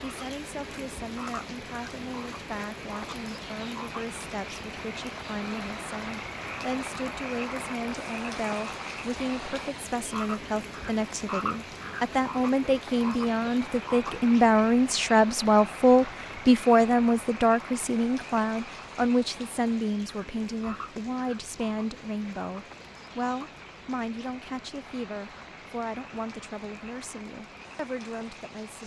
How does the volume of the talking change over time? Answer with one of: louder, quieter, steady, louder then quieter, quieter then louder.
louder then quieter.